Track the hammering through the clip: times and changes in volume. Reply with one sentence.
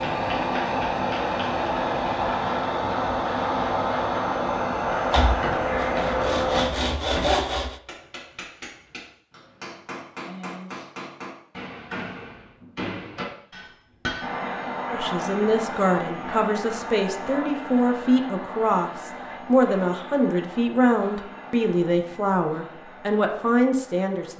You can hear the hammering briefly from 0.0 to 1.6 s; and from 5.2 to 14.3 s, getting quieter then louder.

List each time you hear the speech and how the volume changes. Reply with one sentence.
The speech can be heard from 14.9 to 24.3 s, at a steady volume.